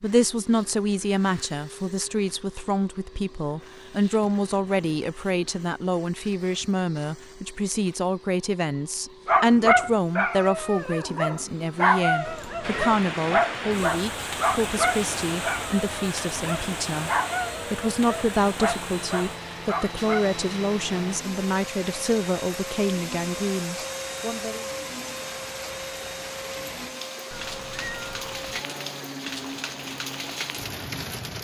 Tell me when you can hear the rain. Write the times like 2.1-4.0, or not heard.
12.6-31.3.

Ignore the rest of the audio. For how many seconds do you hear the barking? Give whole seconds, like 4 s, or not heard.
11 s.